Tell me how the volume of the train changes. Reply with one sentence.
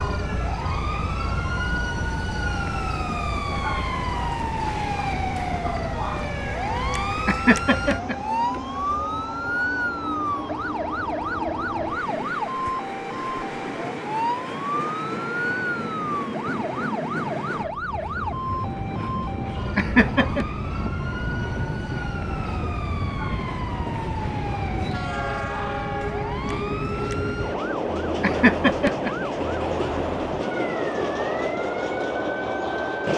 The loudness of the train goes up.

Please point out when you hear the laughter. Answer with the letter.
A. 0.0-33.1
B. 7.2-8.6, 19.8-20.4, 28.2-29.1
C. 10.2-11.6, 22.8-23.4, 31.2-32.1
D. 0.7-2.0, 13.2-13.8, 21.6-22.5
B.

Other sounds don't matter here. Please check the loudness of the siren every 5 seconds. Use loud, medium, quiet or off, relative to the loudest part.
loud, loud, loud, loud, medium, medium, medium.